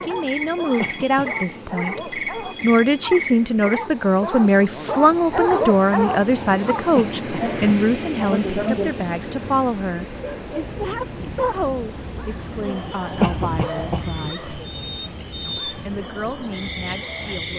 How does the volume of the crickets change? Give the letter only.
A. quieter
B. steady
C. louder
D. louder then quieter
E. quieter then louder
B.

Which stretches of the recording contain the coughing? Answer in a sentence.
The coughing can be heard from 0.8 to 1.4 s, from 7.0 to 7.8 s and from 13.2 to 14.1 s.